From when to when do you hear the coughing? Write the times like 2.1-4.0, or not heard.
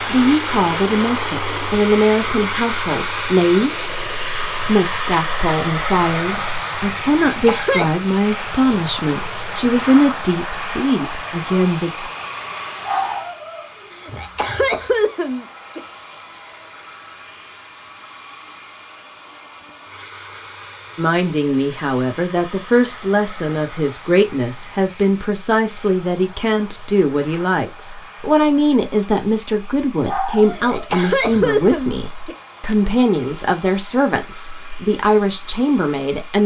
7.2-8.0, 14.0-15.8, 30.5-32.4.